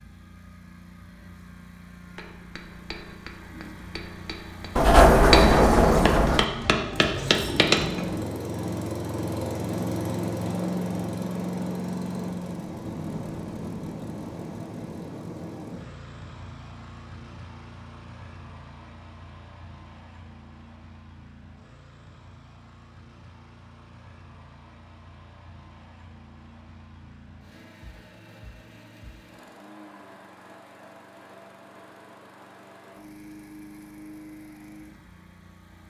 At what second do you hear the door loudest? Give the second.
5 s.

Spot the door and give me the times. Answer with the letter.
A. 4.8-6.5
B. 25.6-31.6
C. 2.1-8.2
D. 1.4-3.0
A.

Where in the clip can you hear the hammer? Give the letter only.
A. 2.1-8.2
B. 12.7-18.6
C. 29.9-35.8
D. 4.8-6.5
A.